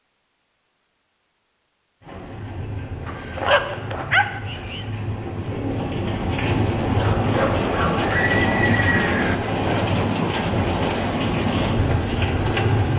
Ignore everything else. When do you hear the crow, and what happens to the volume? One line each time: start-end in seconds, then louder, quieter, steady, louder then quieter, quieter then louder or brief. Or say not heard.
not heard.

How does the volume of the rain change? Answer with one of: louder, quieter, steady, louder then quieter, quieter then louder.
louder.